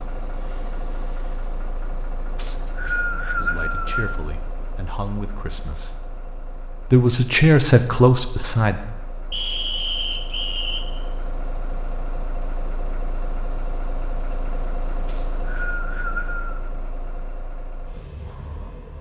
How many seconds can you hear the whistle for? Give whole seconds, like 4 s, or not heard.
5 s.